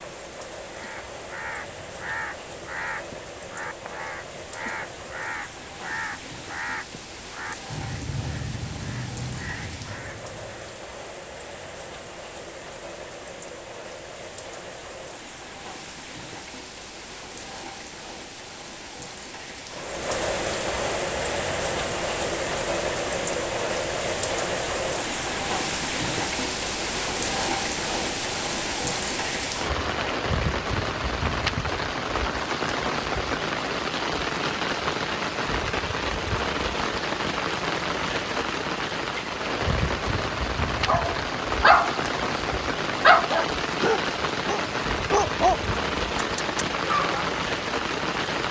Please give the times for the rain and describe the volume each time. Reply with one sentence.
You can hear the rain from 0.0 to 48.4 s, getting louder.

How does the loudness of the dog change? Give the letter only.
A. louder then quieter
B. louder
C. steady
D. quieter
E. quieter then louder
D.